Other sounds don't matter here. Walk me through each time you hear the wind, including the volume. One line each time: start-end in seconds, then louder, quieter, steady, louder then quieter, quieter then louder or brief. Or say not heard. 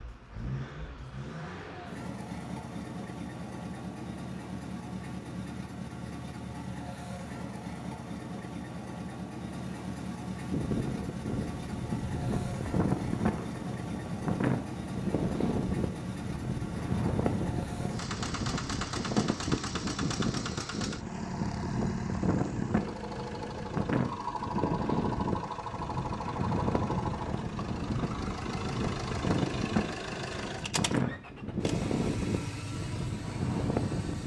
10.5-34.2 steady.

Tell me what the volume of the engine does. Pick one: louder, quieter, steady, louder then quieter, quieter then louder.
steady.